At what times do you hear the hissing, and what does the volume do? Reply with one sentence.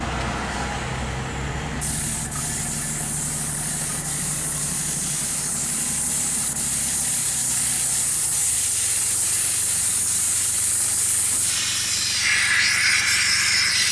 You can hear the hissing from 0.0 to 13.8 s, getting louder.